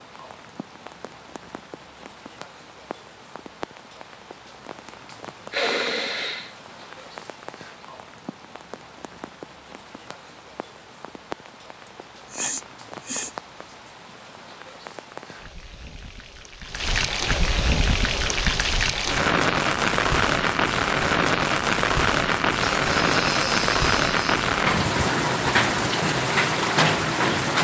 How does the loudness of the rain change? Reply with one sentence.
The volume of the rain goes up.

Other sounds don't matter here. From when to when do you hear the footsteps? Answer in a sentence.
The footsteps can't be heard in this clip.